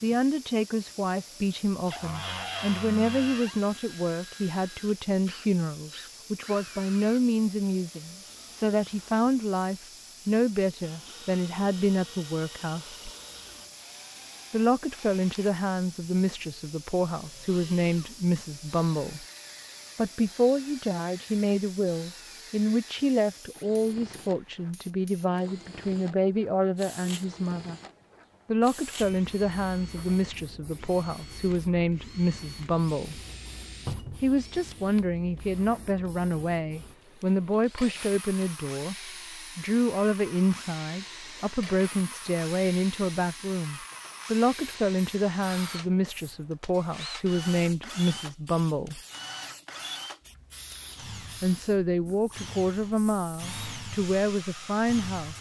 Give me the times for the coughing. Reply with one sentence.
You can't hear the coughing here.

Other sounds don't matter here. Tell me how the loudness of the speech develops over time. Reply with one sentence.
The volume of the speech stays about the same.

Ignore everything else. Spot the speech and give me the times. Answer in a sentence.
You can hear the speech from 0.0 to 13.1 s, from 14.5 to 19.2 s, from 19.9 to 27.8 s, from 28.4 to 33.2 s, from 34.1 to 49.0 s and from 51.4 to 55.3 s.